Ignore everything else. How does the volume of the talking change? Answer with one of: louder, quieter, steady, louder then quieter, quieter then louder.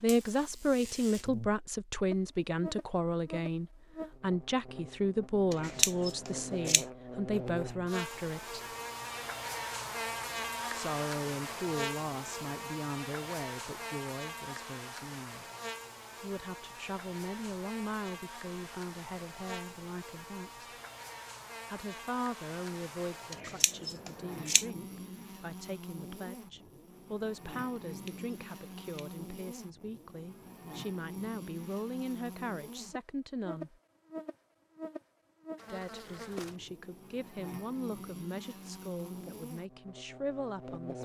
quieter.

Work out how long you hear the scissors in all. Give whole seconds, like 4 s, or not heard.
4 s.